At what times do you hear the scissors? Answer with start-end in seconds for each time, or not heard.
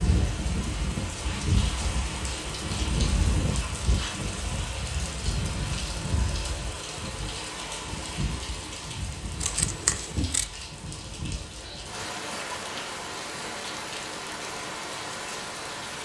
9.4-10.4.